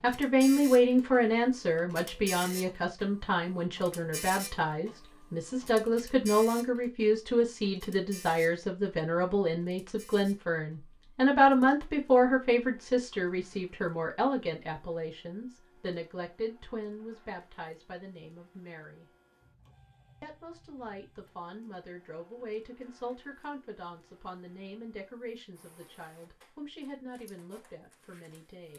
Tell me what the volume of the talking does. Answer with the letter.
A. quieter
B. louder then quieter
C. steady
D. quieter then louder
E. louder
A.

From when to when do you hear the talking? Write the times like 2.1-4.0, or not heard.
0.0-19.1, 20.2-28.7.